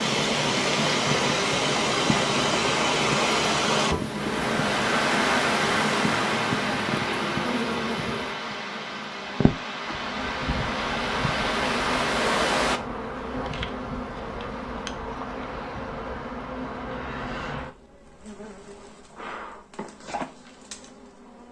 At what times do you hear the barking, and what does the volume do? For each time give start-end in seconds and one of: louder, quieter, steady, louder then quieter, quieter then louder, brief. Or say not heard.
not heard.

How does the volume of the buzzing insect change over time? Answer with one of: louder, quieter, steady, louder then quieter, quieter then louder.
quieter.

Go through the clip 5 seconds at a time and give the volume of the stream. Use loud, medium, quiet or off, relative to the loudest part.
loud, loud, loud, off, off.